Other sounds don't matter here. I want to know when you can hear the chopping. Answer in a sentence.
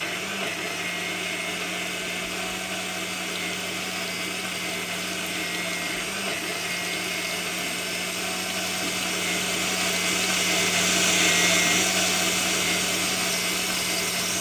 You can't hear the chopping here.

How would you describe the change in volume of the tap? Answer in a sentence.
The volume of the tap goes up.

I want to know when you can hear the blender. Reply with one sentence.
You can hear the blender from 0.0 to 14.3 s.